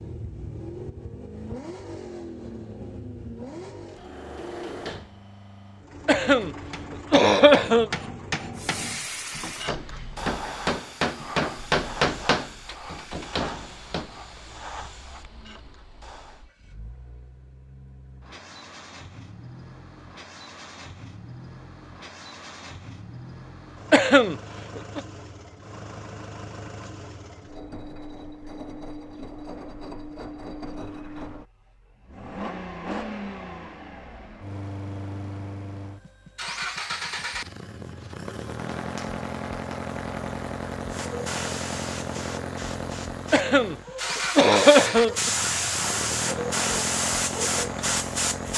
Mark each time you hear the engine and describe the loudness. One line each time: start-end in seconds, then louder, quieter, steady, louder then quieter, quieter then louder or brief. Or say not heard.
0.0-48.5 quieter then louder.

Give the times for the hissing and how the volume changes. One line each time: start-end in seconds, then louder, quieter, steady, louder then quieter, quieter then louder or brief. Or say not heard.
8.6-16.4 quieter
40.9-48.5 quieter then louder.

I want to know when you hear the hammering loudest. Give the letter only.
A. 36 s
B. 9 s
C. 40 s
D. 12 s
D.